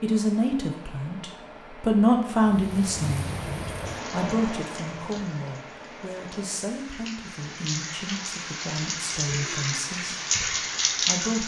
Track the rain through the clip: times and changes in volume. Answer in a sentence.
You can hear the rain from 2.4 to 11.4 s, getting quieter then louder.